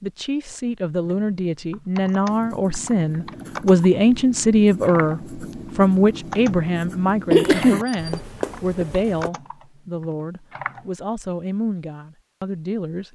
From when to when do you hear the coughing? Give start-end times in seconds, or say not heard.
7.3-8.1.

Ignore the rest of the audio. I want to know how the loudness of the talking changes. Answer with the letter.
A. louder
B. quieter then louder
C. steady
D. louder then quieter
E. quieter
D.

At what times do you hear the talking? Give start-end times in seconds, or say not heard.
0.0-13.1.